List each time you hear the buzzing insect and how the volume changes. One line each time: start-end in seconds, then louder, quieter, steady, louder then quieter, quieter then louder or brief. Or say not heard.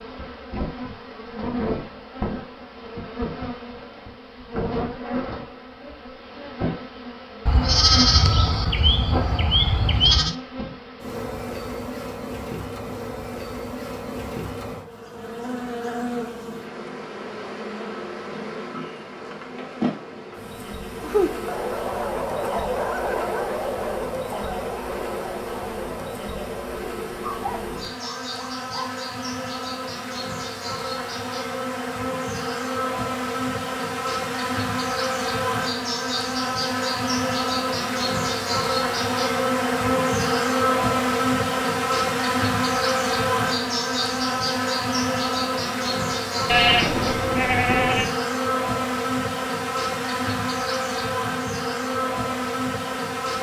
0.0-53.3 louder.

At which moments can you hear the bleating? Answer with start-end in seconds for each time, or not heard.
7.5-10.3, 46.5-48.1.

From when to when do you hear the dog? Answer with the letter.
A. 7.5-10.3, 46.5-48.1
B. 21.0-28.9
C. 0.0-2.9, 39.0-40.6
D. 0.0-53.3
B.